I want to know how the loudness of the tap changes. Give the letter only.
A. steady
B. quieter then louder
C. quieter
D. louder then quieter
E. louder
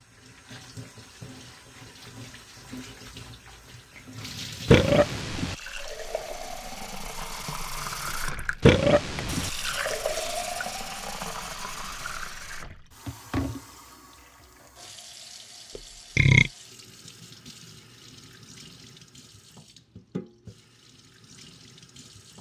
D.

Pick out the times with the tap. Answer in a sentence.
The tap can be heard from 0.0 to 22.3 s.